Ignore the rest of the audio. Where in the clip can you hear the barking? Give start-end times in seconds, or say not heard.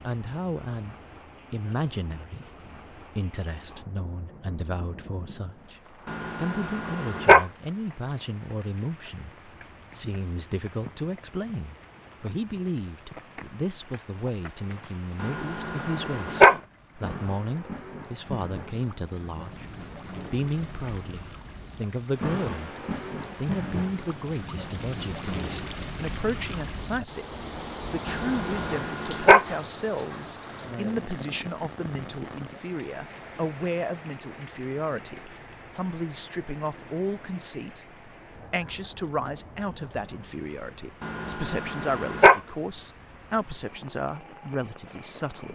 6.0-7.5, 15.2-16.6, 28.1-29.4, 41.0-42.4.